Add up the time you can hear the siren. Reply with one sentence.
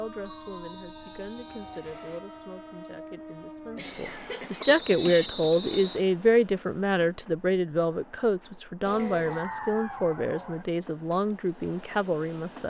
The siren can be heard for 6 seconds in total.